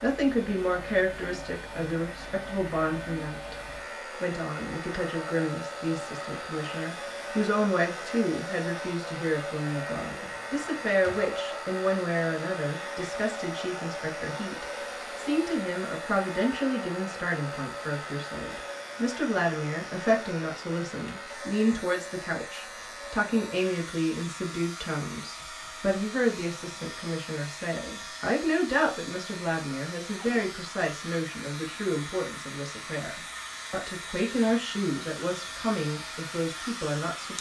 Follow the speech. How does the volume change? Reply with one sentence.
The loudness of the speech stays about the same.